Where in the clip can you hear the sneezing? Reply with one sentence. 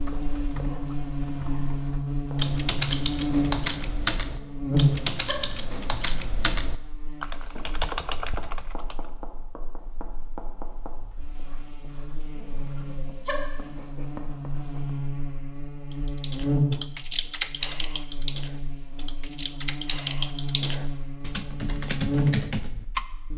The sneezing can be heard from 4.3 to 5.5 s and from 12.3 to 13.4 s.